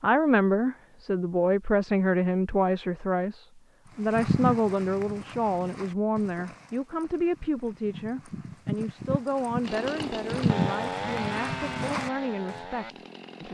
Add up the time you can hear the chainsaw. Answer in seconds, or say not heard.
4 s.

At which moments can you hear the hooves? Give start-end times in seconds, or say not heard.
4.0-12.6.